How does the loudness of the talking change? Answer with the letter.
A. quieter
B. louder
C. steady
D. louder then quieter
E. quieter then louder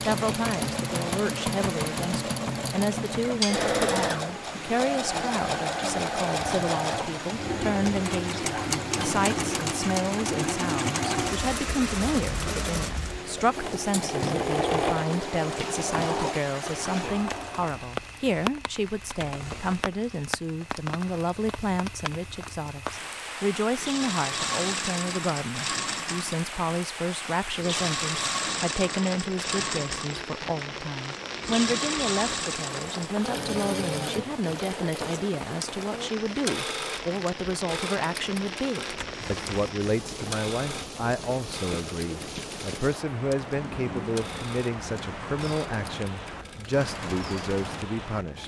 C.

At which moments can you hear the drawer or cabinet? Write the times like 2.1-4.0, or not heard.
8.9-9.7, 19.1-19.9, 38.9-39.8.